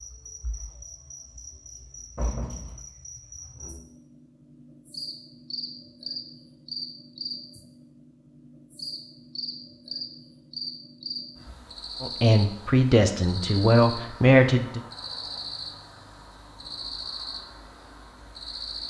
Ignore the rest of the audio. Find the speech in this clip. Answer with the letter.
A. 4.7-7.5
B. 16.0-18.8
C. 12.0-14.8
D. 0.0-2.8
C.